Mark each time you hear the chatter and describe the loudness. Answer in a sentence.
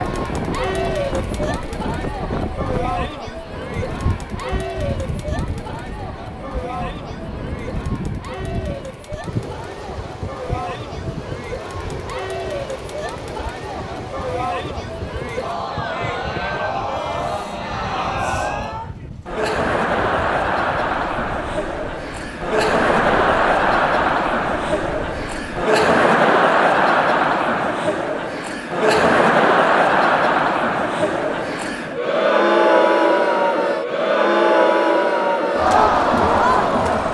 The chatter can be heard from 0.0 to 37.0 s, getting louder.